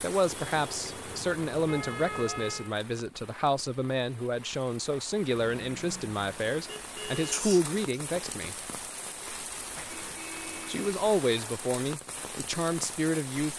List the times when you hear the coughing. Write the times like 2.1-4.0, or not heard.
7.3-8.0.